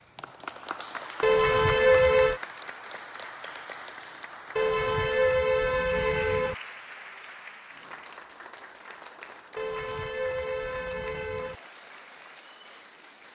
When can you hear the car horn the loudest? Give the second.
2 s.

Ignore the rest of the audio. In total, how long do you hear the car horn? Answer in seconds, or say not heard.
5 s.